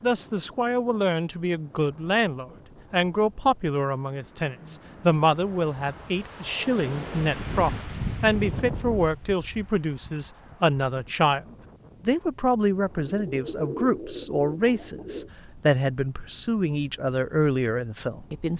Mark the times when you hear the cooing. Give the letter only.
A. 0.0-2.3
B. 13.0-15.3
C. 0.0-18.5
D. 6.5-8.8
B.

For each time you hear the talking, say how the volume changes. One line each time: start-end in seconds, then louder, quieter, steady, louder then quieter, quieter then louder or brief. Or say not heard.
0.0-18.5 steady.